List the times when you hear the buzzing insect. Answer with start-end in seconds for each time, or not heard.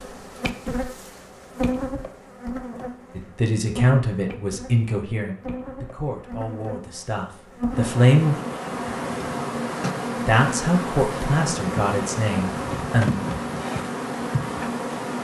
0.0-15.1.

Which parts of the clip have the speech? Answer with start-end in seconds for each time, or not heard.
3.1-8.3, 10.2-13.2.